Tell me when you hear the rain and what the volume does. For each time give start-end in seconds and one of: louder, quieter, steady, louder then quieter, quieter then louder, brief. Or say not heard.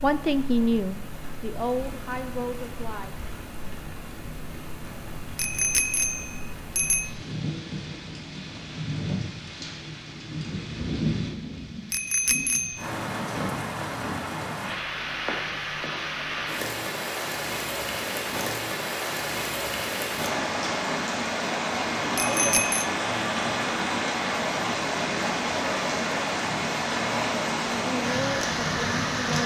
0.0-29.4 louder.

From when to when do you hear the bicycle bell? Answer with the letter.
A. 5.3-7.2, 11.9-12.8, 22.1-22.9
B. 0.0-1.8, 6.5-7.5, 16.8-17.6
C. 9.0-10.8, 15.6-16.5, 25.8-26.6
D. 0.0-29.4
A.